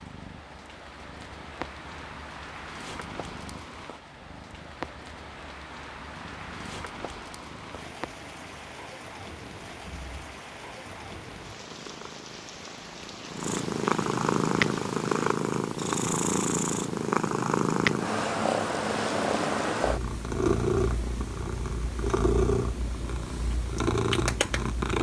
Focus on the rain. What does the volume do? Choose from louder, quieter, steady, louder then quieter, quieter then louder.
steady.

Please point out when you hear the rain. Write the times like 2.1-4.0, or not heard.
0.0-15.4.